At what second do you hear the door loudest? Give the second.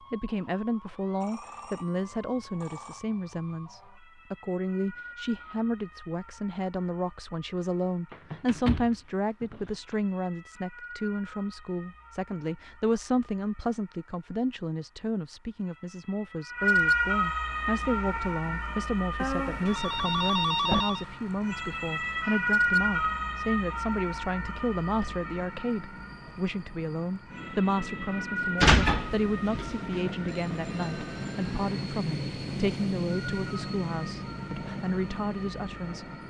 29 s.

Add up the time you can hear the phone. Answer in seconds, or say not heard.
5 s.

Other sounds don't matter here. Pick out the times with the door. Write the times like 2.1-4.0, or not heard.
8.1-9.9, 19.4-20.8, 28.6-29.6.